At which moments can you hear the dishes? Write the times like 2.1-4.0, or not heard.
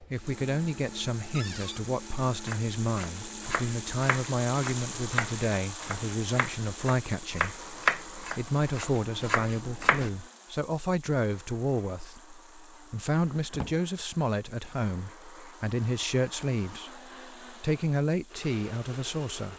not heard.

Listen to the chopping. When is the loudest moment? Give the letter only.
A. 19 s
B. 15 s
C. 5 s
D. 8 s
D.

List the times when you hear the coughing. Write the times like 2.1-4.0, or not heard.
not heard.